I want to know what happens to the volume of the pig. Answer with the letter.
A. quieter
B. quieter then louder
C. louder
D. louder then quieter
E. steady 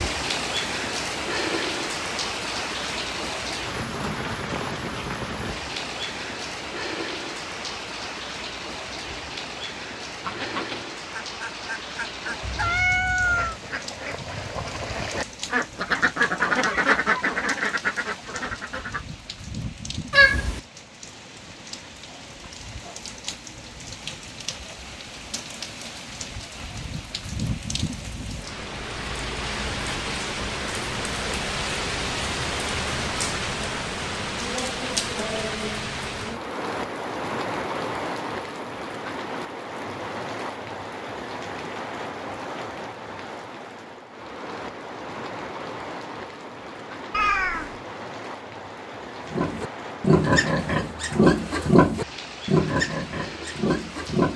A.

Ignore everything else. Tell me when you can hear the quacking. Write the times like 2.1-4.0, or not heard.
10.2-19.1.